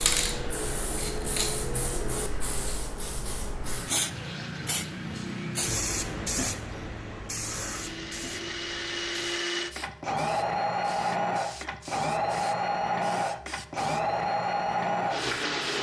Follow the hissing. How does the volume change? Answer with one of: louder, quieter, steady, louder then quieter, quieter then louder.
quieter.